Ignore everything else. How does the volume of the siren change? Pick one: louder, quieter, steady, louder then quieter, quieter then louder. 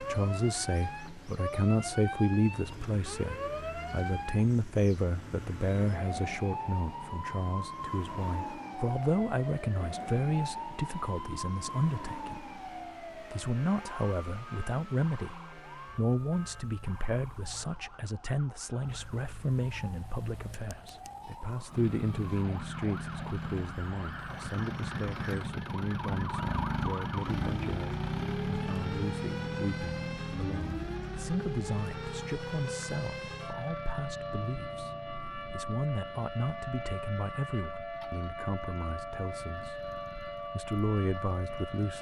quieter then louder.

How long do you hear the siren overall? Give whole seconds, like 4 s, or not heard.
42 s.